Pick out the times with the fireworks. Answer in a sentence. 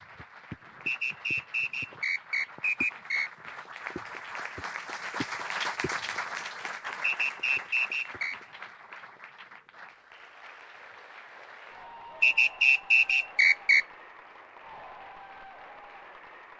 The fireworks can't be heard in this clip.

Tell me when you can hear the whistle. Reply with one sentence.
You can hear the whistle from 0.8 to 3.3 s, from 7.0 to 8.3 s and from 12.2 to 13.8 s.